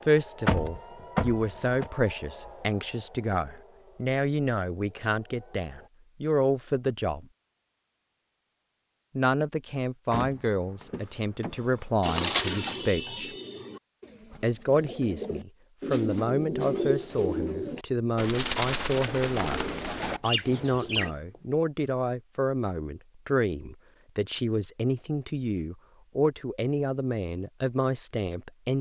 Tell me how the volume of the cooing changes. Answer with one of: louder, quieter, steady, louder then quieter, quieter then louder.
quieter then louder.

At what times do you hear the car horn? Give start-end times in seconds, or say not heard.
not heard.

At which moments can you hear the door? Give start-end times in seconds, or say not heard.
0.5-1.9, 10.1-12.0, 19.8-21.4.